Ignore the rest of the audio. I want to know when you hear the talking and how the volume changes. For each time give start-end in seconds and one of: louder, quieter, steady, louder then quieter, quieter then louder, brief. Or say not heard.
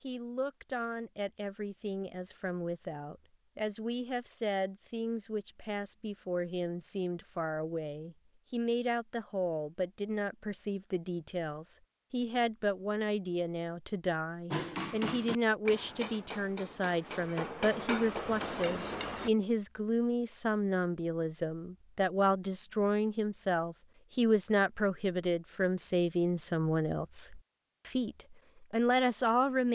0.0-29.7 louder.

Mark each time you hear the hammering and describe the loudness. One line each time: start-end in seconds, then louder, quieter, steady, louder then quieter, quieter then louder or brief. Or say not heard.
14.5-19.3 quieter then louder.